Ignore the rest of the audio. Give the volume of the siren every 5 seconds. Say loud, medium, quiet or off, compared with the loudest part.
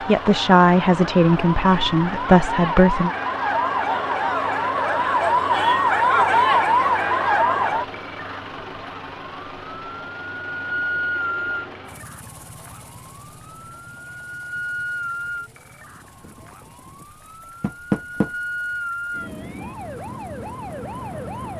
medium, loud, medium, quiet, quiet.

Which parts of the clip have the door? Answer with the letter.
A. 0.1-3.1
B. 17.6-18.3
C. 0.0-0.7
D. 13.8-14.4
B.